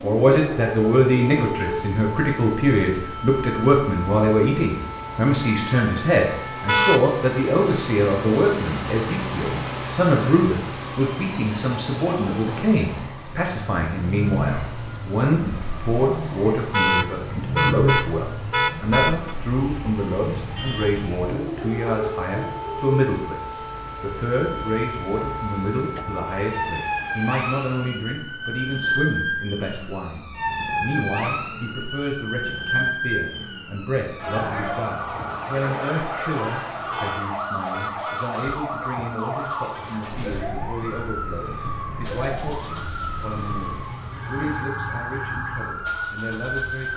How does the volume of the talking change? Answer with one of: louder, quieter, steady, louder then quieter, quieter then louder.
quieter.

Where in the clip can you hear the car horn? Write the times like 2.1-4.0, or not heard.
6.7-7.1, 16.7-19.4, 36.9-38.3.